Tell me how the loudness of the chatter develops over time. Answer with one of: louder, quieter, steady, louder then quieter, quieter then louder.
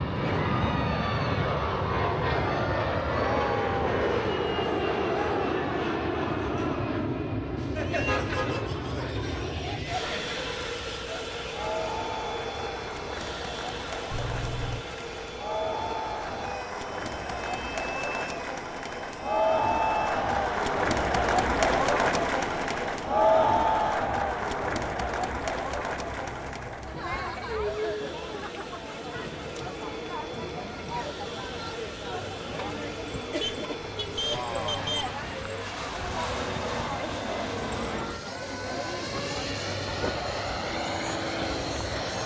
louder then quieter.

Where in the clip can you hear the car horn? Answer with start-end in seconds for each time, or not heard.
8.1-8.7, 14.1-14.8, 33.4-35.1.